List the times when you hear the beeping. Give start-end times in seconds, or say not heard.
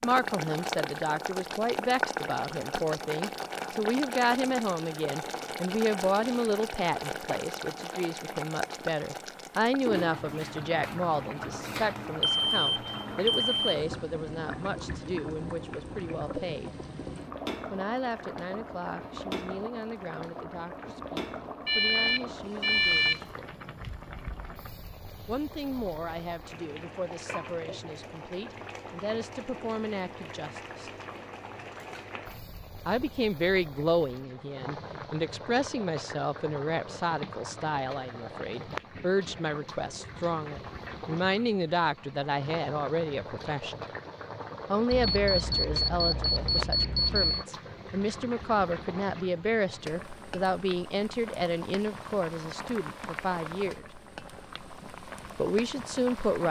12.2-13.8, 21.6-23.2, 44.9-47.5.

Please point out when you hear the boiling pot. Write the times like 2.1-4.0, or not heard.
0.0-56.4.